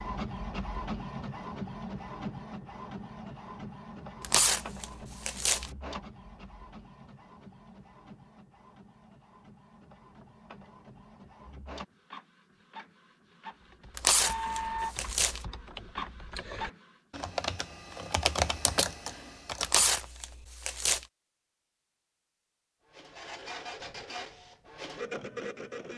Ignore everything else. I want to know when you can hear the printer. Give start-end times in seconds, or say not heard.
0.0-16.9, 22.9-25.9.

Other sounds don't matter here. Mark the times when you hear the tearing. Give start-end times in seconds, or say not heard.
4.2-5.7, 13.9-15.4, 19.6-21.1.